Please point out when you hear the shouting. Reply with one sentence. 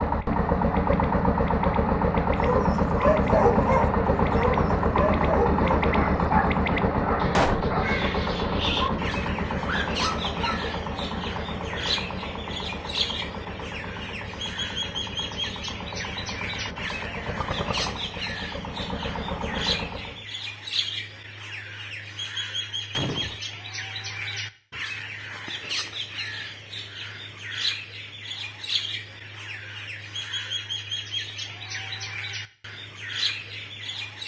The shouting can't be heard in this clip.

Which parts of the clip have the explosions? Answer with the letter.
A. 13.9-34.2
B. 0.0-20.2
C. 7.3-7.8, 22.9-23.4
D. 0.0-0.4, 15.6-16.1
C.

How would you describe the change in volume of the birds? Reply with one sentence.
The loudness of the birds stays about the same.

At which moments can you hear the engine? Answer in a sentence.
The engine can be heard from 0.0 to 20.2 s.